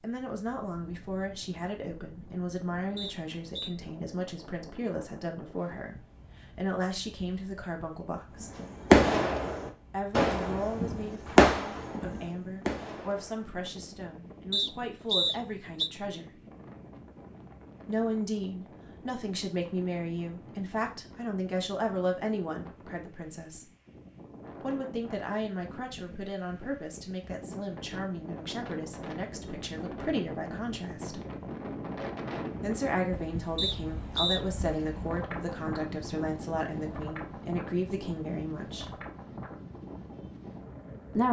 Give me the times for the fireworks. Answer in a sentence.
You can hear the fireworks from 8.6 to 13.4 s.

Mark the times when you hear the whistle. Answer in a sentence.
The whistle can be heard from 3.0 to 3.7 s, from 14.5 to 15.9 s and from 33.5 to 34.4 s.